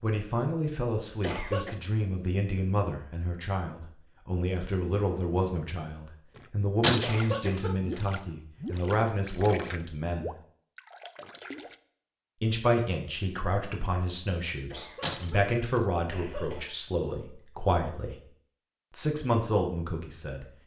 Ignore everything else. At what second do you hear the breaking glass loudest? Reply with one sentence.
The loudest moment of the breaking glass is at 7 seconds.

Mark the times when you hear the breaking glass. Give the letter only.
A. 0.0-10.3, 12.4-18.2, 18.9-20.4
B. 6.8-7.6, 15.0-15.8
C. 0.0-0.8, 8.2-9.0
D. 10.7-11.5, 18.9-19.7
B.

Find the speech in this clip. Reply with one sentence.
You can hear the speech from 0.0 to 10.3 s, from 12.4 to 18.2 s and from 18.9 to 20.4 s.